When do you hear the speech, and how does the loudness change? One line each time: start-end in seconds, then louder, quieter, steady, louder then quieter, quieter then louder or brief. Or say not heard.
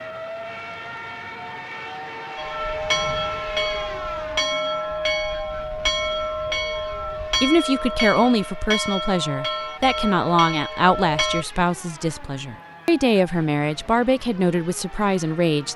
7.4-15.7 steady.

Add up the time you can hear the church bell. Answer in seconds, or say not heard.
9 s.